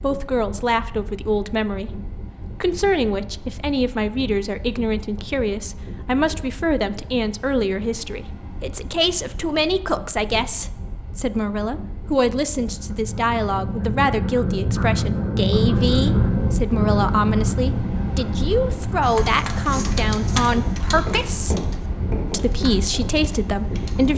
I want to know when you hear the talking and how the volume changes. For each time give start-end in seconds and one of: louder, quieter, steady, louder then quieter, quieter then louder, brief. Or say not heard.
0.0-21.6 steady
22.3-24.1 brief.